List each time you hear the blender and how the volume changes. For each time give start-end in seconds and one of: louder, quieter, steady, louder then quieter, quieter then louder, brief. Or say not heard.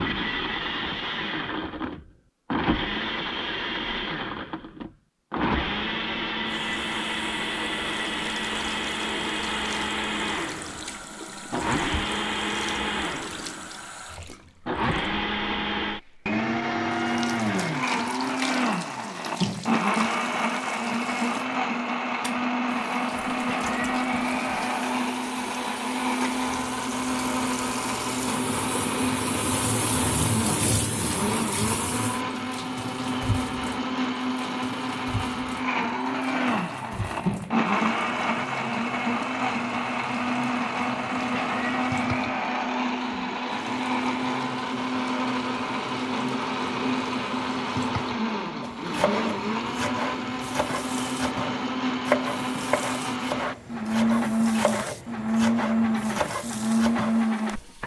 0.0-13.8 steady
14.7-57.8 steady.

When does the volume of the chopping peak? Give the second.
52 s.